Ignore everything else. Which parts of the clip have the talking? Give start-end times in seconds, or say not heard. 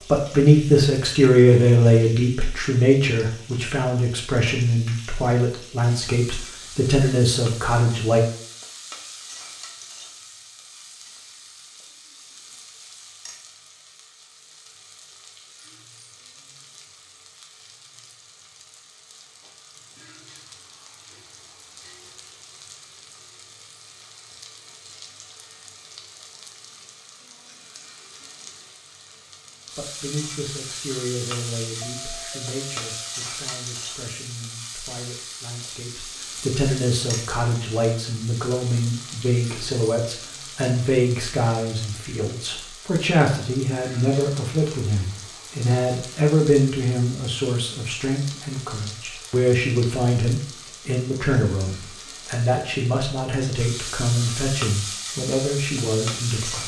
0.1-8.2, 29.8-56.6.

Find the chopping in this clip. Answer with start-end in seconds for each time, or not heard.
not heard.